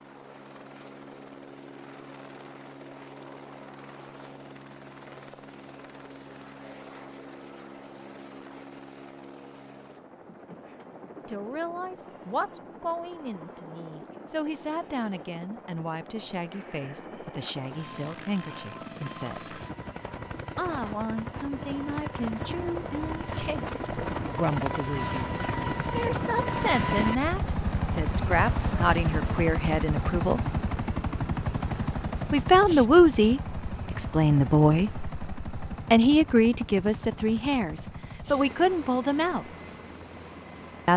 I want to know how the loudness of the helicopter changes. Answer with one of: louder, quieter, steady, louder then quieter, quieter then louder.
louder then quieter.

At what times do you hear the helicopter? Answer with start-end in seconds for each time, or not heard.
0.0-40.9.